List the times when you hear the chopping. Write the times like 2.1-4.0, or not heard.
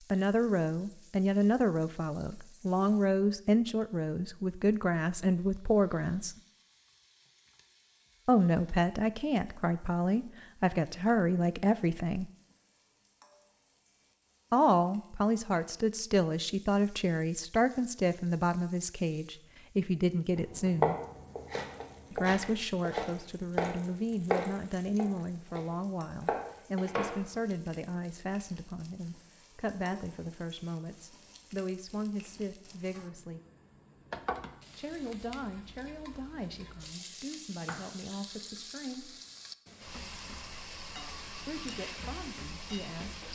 20.4-27.2.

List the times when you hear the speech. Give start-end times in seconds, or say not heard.
0.1-6.3, 8.2-12.3, 14.5-20.9, 22.1-33.4, 34.8-39.2, 41.5-43.3.